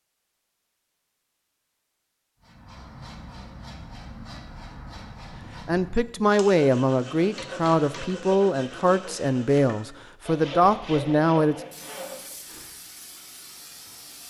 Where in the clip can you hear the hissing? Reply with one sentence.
You can hear the hissing from 11.5 to 14.2 s.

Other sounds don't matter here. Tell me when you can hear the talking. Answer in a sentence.
You can hear the talking from 5.7 to 11.6 s.